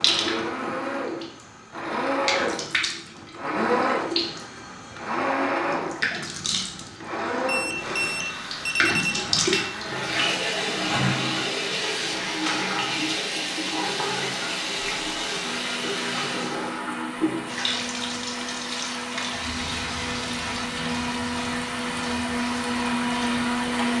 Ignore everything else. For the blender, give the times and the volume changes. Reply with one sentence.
The blender can be heard from 0.0 to 23.9 s, getting quieter then louder.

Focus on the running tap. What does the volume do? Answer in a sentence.
The loudness of the running tap goes up, then down.